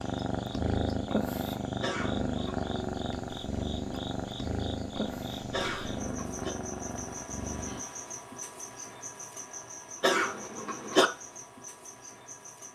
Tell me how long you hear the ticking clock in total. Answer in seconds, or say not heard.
not heard.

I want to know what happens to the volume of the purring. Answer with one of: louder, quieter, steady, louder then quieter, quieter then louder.
quieter.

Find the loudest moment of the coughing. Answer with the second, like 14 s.
11 s.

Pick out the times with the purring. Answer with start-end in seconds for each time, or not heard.
0.0-7.8.